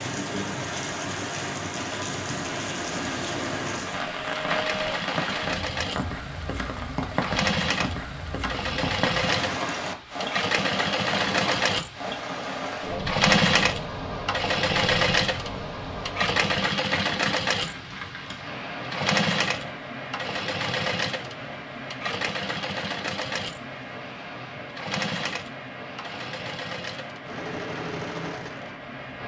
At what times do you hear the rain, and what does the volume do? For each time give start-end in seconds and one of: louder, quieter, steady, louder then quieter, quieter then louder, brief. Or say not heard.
0.0-29.2 quieter.